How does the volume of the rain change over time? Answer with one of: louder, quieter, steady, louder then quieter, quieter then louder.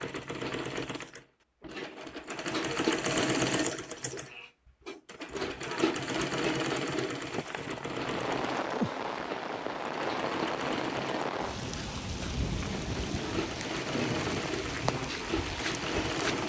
steady.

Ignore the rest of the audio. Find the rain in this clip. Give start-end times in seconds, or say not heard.
7.2-16.4.